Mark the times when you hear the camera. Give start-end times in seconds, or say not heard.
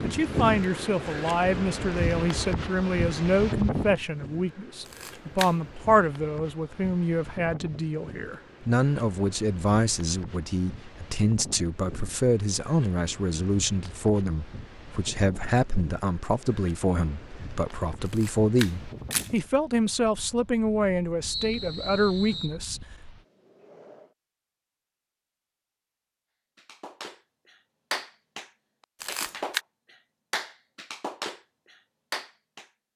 4.8-5.5, 18.1-19.4, 29.0-29.6.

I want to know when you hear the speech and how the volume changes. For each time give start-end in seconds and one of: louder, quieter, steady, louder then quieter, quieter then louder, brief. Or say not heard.
0.0-22.8 steady.